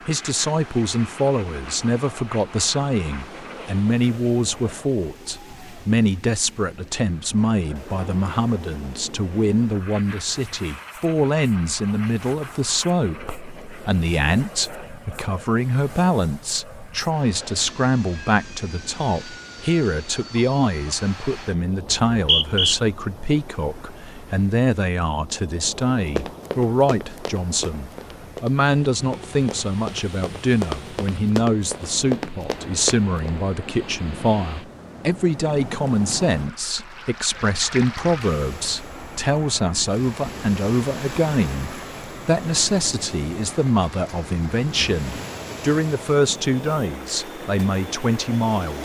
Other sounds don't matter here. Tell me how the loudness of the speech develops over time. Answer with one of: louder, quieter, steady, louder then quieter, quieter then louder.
steady.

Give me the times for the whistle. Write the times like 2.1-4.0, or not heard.
21.9-22.8.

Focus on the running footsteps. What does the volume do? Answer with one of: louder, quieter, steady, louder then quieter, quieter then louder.
louder.